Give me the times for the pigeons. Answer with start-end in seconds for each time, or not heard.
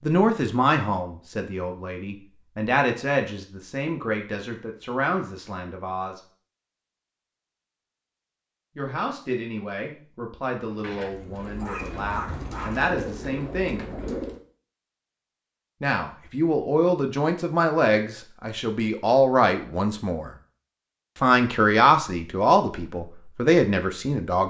10.7-14.4.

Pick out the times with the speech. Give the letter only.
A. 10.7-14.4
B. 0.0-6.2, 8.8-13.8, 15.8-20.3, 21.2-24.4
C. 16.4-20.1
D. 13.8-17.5
B.